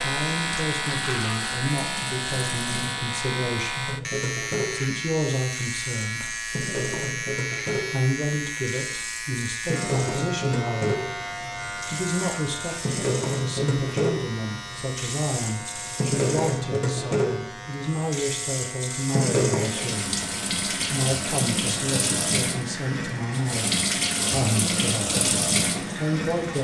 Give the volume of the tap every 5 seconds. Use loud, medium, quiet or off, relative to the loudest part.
medium, medium, loud, loud, loud, loud.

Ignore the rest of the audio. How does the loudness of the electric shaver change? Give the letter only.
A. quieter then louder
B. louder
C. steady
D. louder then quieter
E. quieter
E.